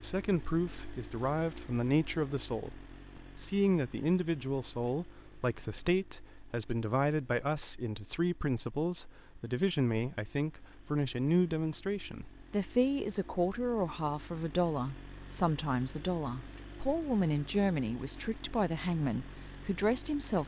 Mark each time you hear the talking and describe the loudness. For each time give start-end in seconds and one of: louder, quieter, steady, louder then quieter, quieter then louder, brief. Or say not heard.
0.0-20.4 steady.